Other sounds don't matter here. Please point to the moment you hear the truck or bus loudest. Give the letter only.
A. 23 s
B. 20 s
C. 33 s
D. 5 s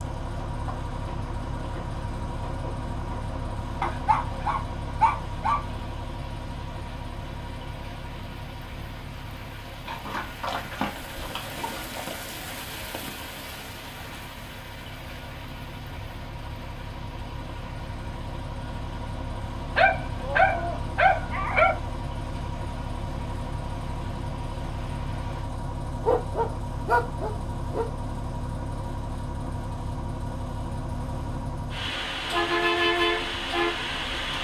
C.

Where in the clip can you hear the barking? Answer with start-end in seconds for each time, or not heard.
3.8-5.6, 9.8-12.2, 19.8-21.8, 26.0-27.9.